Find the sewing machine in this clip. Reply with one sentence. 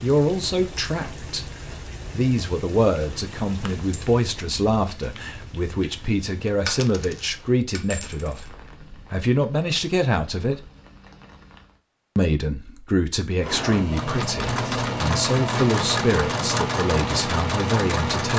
You can hear the sewing machine from 13.4 to 18.3 s.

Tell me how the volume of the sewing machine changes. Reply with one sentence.
The loudness of the sewing machine stays about the same.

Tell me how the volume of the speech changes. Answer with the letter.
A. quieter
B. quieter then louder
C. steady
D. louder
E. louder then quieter
C.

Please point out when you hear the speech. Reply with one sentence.
The speech can be heard from 0.0 to 10.7 s and from 12.2 to 18.3 s.